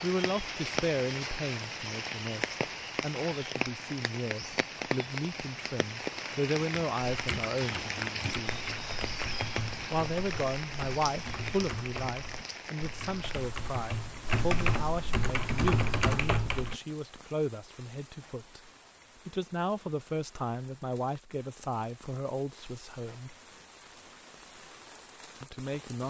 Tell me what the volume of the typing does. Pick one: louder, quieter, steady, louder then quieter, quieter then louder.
louder.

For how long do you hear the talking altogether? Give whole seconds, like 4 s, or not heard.
22 s.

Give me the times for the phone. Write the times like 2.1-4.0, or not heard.
not heard.